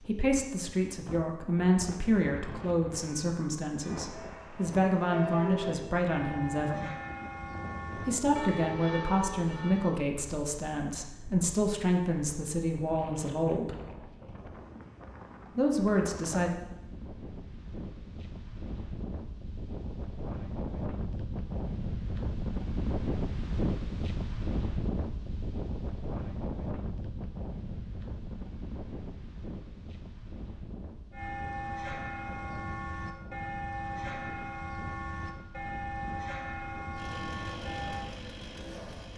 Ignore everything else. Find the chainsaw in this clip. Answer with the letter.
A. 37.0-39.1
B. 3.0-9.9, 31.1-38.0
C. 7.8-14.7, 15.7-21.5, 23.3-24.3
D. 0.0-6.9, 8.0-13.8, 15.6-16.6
A.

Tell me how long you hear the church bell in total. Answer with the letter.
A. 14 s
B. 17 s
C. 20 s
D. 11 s
A.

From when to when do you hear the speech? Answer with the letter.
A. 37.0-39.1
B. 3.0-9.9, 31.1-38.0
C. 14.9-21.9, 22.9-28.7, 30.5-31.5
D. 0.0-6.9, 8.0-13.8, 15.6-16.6
D.